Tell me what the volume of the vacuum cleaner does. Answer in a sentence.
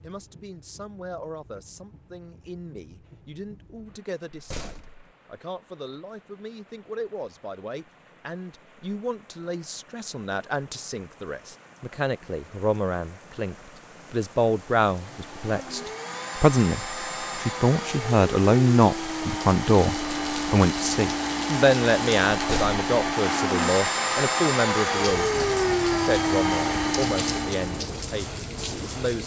The volume of the vacuum cleaner goes up.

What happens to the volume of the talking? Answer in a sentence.
The volume of the talking goes up, then down.